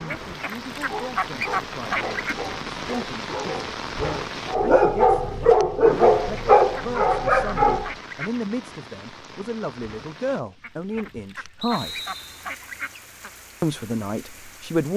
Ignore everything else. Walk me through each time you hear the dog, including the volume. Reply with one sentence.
You can hear the dog from 0.7 to 8.0 s, getting louder.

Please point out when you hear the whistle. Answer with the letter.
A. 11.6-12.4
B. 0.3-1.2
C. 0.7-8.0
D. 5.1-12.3
A.